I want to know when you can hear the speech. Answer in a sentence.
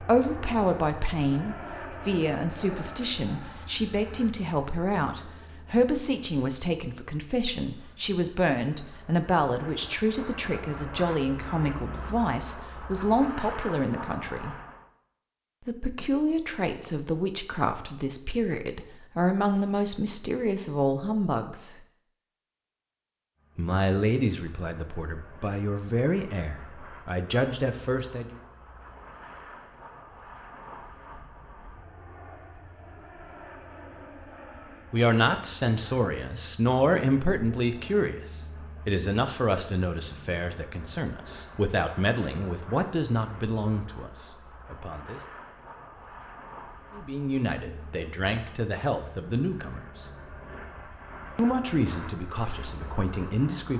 You can hear the speech from 0.0 to 14.6 s, from 15.7 to 21.8 s, from 23.6 to 28.4 s, from 34.9 to 45.2 s, from 47.0 to 50.0 s and from 51.4 to 53.7 s.